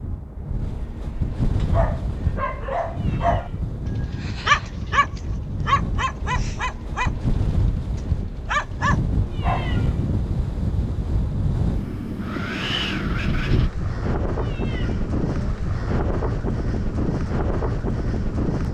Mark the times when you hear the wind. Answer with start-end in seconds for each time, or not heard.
0.0-18.6.